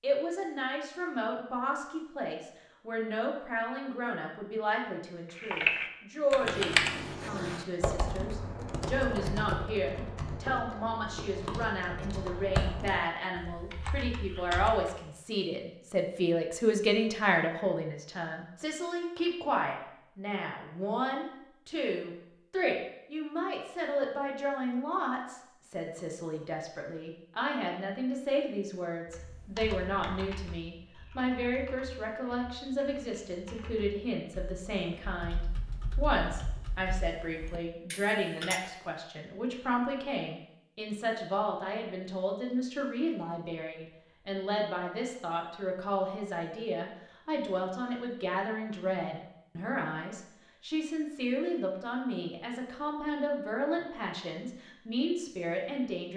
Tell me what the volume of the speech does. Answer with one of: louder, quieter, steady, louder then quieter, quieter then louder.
steady.